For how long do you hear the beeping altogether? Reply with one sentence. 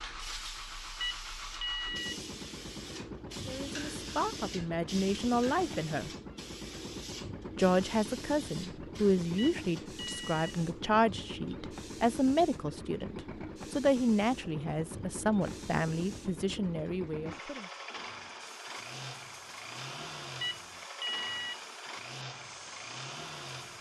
You can hear the beeping for 4 seconds altogether.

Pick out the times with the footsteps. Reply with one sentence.
You can't hear the footsteps here.